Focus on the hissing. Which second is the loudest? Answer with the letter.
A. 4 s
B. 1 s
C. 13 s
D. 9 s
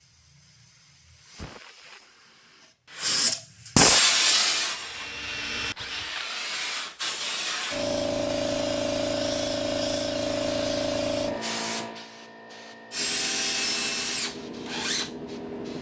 A.